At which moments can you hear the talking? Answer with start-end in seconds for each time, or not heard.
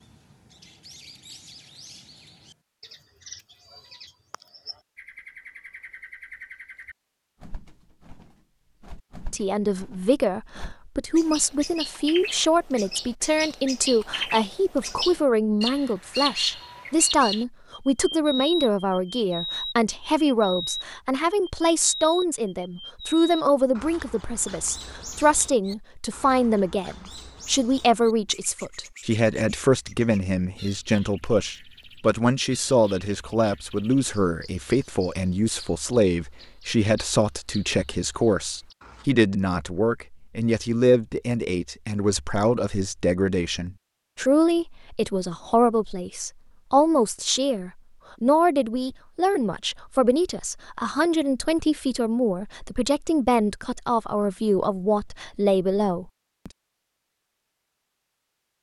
9.3-56.5.